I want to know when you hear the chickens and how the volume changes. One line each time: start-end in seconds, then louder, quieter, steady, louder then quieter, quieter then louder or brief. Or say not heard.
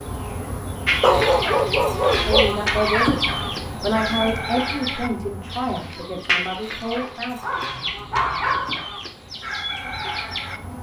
0.8-10.6 quieter.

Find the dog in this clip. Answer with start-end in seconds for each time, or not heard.
1.0-2.5, 7.4-8.8.